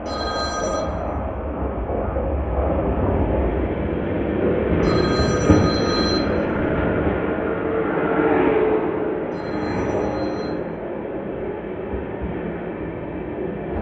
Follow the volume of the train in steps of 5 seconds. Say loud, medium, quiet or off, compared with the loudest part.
loud, loud, medium.